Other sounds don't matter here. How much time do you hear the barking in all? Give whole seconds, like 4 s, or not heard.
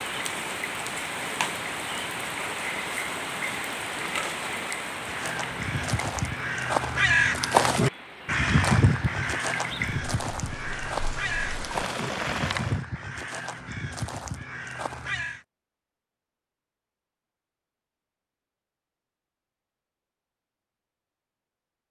not heard.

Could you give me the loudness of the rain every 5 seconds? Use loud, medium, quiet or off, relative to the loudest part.
loud, medium, loud, off, off.